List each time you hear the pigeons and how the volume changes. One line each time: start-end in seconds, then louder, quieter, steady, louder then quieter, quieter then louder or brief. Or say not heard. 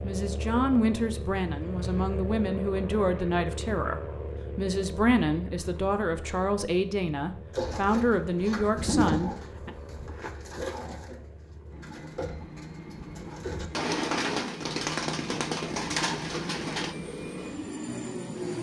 7.5-16.9 quieter then louder.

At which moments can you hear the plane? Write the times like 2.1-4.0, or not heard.
0.0-18.5.